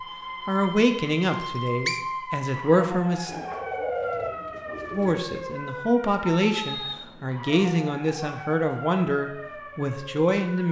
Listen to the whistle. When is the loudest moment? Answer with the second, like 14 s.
2 s.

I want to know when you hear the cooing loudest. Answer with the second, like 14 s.
4 s.